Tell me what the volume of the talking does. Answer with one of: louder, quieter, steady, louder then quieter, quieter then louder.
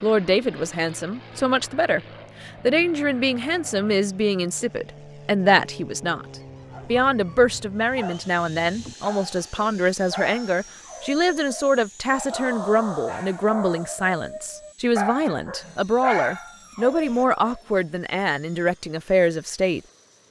steady.